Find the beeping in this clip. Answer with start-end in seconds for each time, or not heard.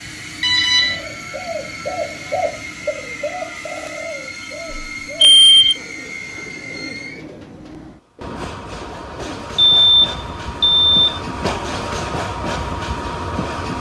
0.4-1.0, 4.7-5.8, 9.6-11.1.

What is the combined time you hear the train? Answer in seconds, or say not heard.
14 s.